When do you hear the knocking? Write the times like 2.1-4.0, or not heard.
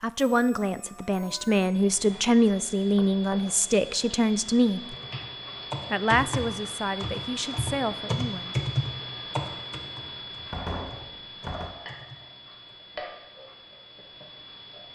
3.0-3.5, 10.5-11.8.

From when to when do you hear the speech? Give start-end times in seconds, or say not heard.
0.0-5.0, 5.9-8.6.